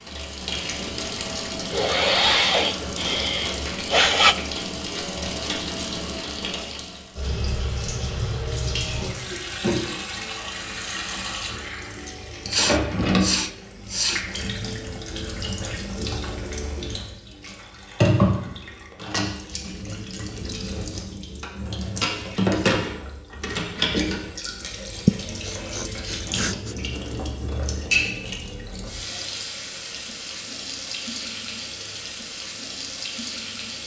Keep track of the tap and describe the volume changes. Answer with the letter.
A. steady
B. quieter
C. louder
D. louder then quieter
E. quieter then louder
A.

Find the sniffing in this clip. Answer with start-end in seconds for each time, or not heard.
1.7-4.3, 12.1-14.2, 25.1-26.8.